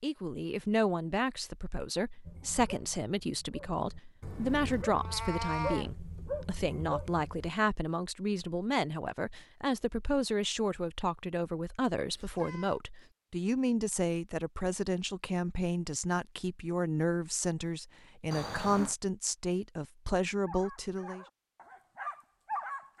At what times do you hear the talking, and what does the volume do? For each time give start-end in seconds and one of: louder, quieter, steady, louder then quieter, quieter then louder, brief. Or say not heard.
0.0-21.2 steady.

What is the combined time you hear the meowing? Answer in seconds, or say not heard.
2 s.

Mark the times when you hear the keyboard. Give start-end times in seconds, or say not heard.
not heard.